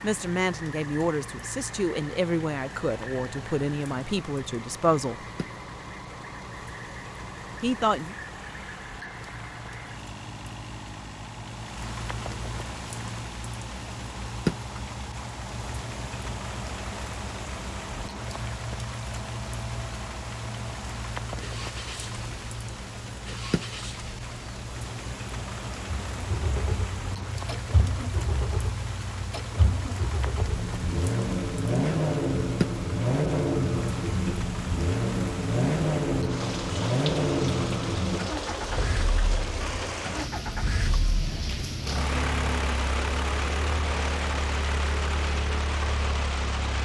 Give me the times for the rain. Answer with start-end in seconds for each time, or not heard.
0.0-46.8.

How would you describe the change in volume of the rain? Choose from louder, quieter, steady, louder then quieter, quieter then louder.
louder.